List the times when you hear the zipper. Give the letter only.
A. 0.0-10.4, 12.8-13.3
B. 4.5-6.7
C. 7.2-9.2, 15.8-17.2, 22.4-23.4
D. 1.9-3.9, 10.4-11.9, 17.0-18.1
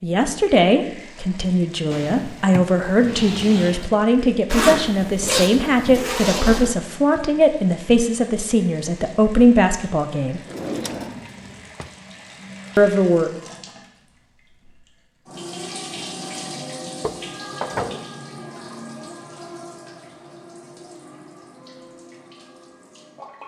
B.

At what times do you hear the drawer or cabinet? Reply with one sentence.
The drawer or cabinet can be heard from 1.9 to 3.9 s, from 10.4 to 11.9 s and from 17.0 to 18.1 s.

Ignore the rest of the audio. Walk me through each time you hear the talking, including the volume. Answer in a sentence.
The talking can be heard from 0.0 to 10.4 s, at a steady volume; and briefly from 12.8 to 13.3 s.